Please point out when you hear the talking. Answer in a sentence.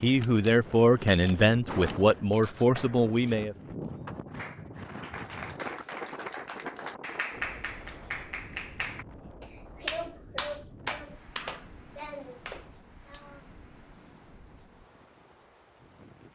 You can hear the talking from 0.0 to 3.5 s.